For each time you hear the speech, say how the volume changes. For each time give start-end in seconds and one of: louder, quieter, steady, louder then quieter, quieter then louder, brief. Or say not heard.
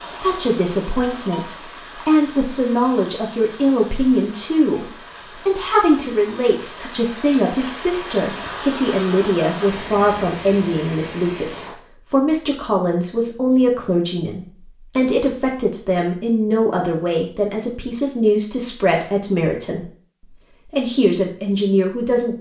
0.1-22.3 steady.